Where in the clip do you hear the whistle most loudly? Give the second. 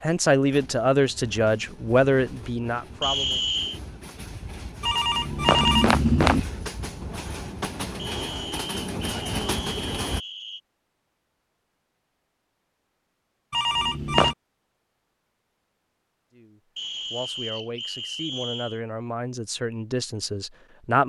3 s.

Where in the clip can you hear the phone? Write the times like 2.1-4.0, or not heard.
4.8-6.4, 13.5-14.3.